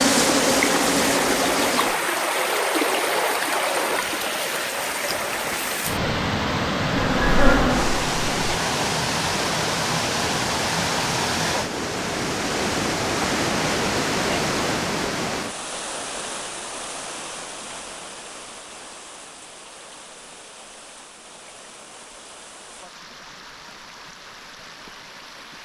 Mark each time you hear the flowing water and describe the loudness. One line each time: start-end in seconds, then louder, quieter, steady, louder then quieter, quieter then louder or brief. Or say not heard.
0.0-25.5 quieter.